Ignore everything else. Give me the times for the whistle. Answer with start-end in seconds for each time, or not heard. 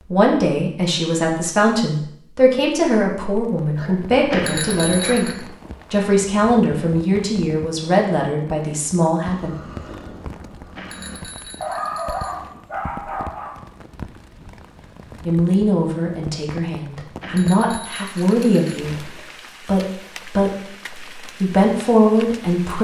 not heard.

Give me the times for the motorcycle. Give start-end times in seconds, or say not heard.
9.2-11.2.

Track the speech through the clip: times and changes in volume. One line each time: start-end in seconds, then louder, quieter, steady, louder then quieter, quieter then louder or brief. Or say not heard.
0.0-9.6 steady
15.2-22.8 louder.